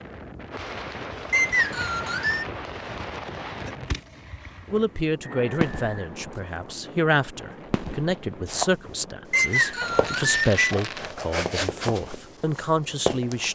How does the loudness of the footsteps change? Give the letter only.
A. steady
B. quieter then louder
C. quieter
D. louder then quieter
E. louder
D.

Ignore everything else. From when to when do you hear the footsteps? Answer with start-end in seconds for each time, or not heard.
8.4-13.4.